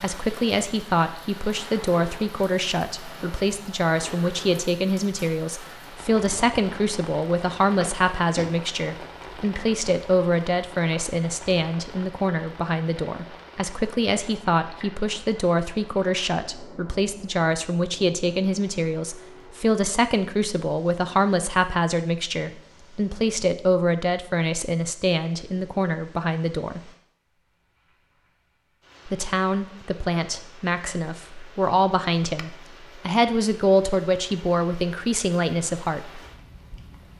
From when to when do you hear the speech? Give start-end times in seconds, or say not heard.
0.0-26.9, 29.1-36.2.